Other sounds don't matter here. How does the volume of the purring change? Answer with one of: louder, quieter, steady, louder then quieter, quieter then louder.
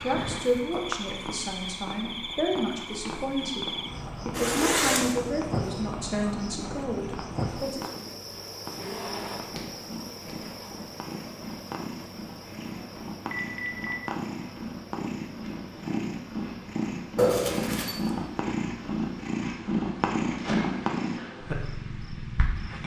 louder.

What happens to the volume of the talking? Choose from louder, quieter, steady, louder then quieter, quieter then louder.
steady.